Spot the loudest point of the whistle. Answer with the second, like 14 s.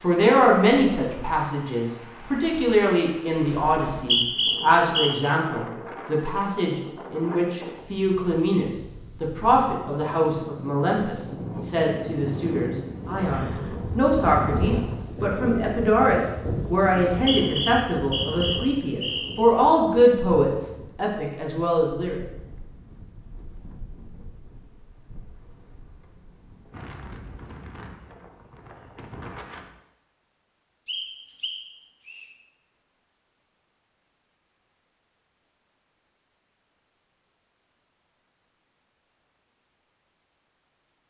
4 s.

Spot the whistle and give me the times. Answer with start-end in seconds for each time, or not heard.
3.9-5.3, 17.1-19.4, 30.9-32.2.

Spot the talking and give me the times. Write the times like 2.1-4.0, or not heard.
0.0-22.2.